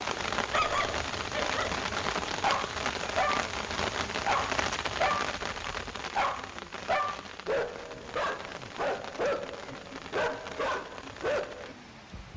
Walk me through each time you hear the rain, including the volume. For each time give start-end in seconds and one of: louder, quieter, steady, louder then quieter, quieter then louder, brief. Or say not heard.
0.0-12.3 quieter.